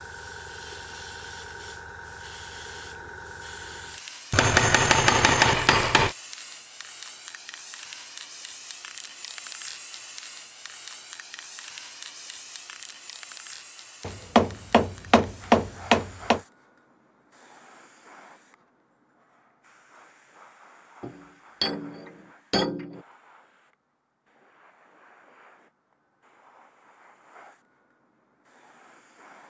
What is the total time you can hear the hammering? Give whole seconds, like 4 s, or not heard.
6 s.